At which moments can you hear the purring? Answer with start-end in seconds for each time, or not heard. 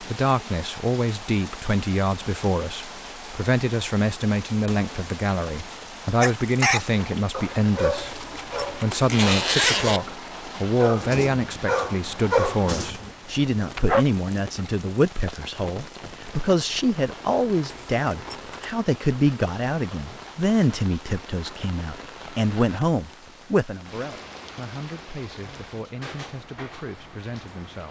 not heard.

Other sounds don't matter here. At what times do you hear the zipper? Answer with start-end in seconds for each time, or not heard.
8.0-10.0, 17.6-18.8.